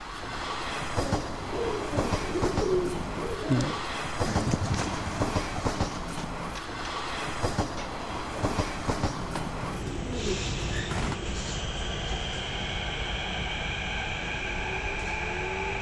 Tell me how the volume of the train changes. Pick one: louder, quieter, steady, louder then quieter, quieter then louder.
steady.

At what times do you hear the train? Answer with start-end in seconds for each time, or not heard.
0.0-15.7.